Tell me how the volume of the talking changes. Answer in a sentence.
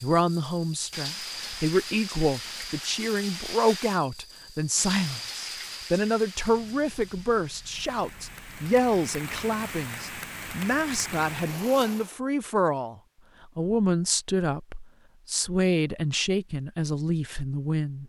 The loudness of the talking stays about the same.